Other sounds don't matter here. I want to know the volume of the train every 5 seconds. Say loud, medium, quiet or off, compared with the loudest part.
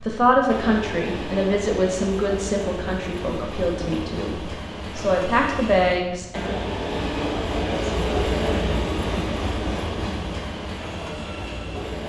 medium, loud, medium.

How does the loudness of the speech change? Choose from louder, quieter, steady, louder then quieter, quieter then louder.
quieter then louder.